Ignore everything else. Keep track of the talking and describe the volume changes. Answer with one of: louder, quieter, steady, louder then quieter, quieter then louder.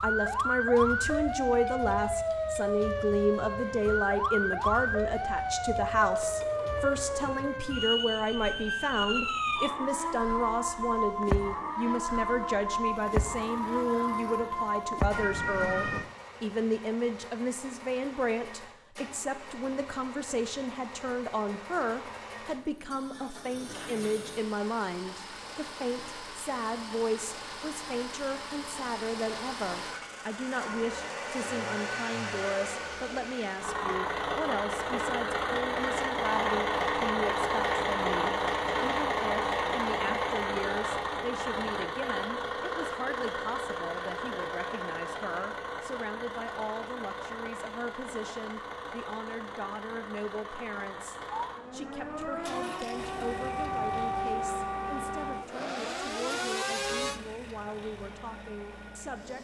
quieter.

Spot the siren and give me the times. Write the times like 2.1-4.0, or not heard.
0.0-16.1, 51.3-57.2.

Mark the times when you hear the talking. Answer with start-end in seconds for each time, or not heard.
0.0-59.3.